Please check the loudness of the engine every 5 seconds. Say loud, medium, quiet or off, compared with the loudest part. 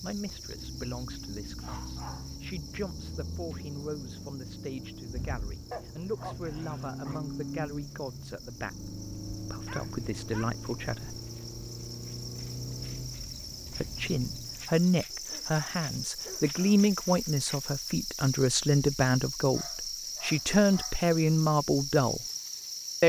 loud, loud, loud, off, off.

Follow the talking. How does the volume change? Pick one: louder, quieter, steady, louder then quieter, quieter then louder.
louder.